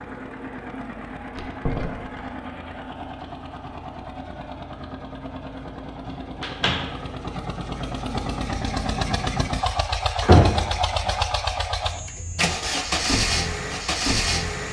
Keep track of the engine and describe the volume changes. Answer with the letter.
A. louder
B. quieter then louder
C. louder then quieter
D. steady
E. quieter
A.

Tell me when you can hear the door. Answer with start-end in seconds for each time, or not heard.
1.4-2.2, 6.0-6.9, 10.2-10.7.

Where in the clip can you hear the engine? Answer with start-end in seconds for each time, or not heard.
0.0-14.6.